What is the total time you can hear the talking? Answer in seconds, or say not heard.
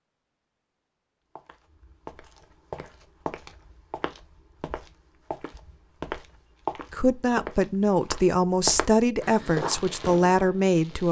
4 s.